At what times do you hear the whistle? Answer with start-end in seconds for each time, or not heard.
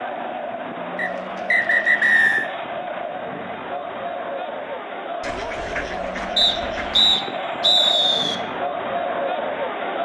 0.9-2.5, 6.3-8.3.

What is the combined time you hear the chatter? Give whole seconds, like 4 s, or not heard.
10 s.